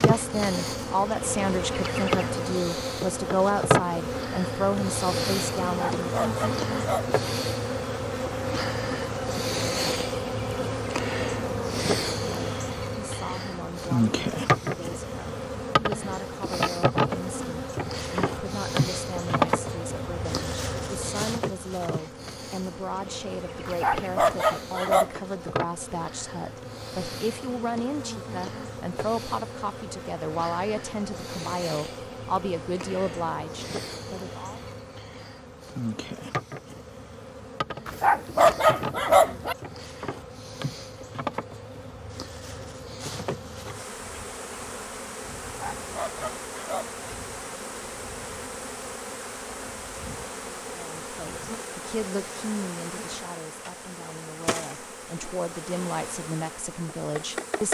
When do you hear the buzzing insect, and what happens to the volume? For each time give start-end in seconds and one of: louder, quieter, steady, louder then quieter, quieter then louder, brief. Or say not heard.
0.0-57.6 quieter.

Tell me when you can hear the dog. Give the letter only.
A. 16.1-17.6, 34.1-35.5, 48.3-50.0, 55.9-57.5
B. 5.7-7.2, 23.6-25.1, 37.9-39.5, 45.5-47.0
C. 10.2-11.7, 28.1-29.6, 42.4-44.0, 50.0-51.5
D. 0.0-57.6
B.